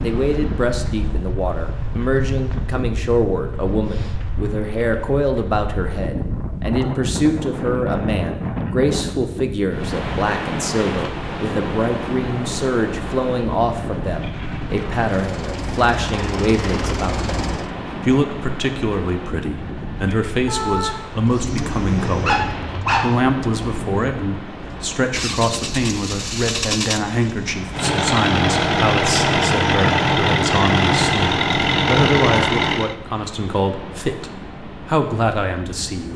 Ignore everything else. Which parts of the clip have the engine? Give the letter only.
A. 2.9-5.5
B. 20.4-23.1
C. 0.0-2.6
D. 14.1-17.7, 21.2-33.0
D.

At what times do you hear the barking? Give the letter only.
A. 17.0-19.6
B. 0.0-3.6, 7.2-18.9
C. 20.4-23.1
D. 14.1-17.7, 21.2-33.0
C.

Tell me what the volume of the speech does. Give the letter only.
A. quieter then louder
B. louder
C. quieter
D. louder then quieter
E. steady
E.